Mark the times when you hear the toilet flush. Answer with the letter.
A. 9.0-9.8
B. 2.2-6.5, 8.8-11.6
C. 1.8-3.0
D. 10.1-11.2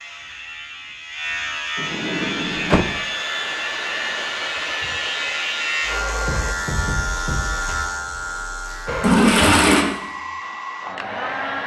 A.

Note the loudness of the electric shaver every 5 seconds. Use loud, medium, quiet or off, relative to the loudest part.
loud, loud, off.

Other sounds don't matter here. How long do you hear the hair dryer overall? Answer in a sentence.
The hair dryer can be heard for 7 seconds in total.